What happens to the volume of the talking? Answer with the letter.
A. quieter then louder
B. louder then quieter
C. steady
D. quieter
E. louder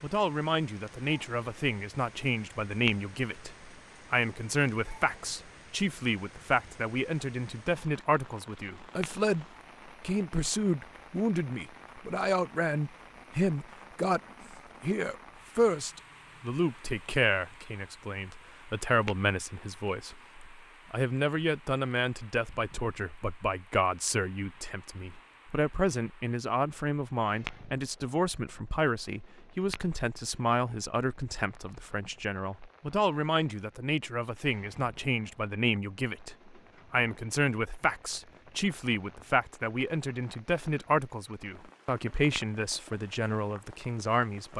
C.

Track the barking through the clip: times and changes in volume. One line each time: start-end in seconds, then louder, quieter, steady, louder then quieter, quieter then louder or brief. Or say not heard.
not heard.